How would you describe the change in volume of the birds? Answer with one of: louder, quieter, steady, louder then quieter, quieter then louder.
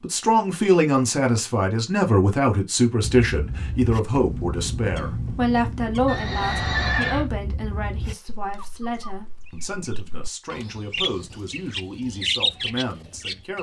quieter then louder.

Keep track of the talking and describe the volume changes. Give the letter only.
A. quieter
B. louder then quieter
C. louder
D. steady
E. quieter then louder
A.